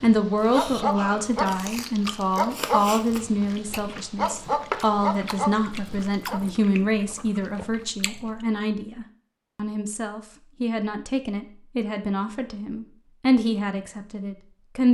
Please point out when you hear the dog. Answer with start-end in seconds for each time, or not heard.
0.0-6.4.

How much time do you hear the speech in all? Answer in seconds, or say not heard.
15 s.